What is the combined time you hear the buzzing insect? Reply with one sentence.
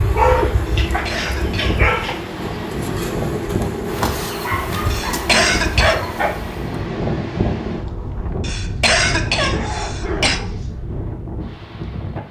You can hear the buzzing insect for 7 seconds altogether.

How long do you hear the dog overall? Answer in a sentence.
You can hear the dog for 5 seconds altogether.